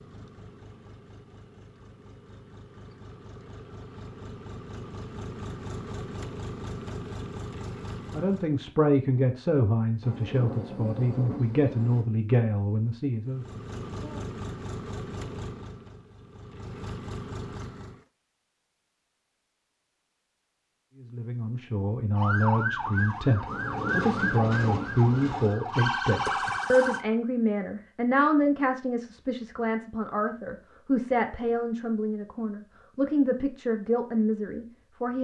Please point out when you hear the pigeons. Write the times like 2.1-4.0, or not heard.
not heard.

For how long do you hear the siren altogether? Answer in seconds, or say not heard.
5 s.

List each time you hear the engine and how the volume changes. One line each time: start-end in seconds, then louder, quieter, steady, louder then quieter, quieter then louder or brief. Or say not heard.
0.0-8.6 louder
13.2-18.1 quieter then louder.